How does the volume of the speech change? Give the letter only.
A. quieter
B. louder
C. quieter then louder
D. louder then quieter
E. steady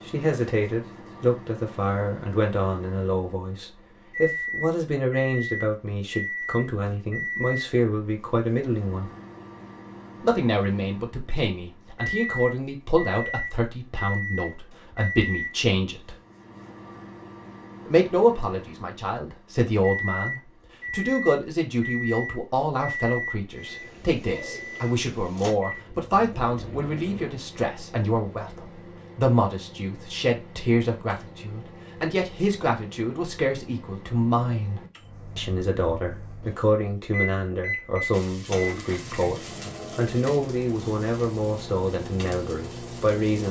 E.